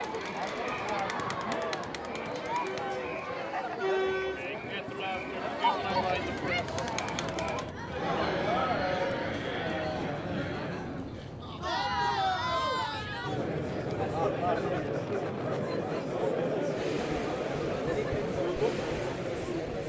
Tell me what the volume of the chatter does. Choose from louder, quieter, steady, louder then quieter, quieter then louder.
steady.